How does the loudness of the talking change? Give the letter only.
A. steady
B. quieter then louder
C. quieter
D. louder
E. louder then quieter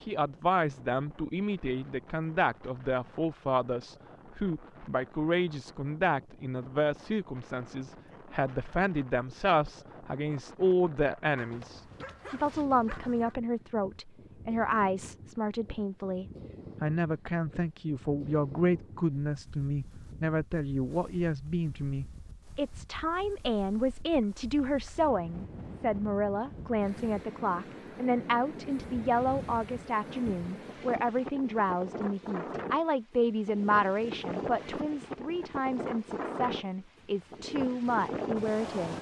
A.